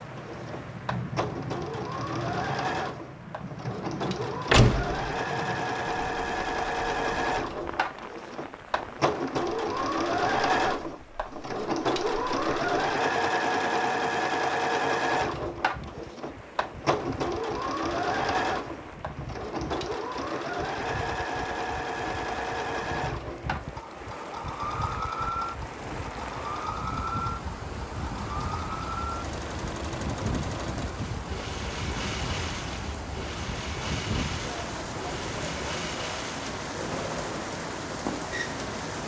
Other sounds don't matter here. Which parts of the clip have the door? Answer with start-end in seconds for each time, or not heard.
4.5-5.0.